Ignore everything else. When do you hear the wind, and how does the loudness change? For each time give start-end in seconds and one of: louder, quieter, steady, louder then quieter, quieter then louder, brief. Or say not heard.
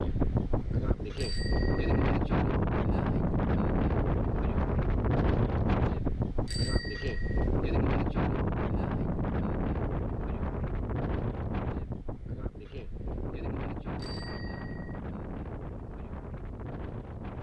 0.0-17.3 quieter.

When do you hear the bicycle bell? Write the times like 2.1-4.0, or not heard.
1.1-2.1, 6.5-7.5, 13.9-15.0.